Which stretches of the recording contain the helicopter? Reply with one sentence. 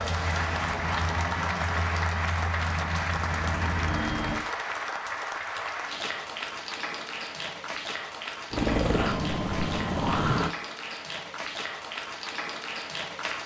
The helicopter can be heard from 0.0 to 4.5 s and from 8.5 to 10.6 s.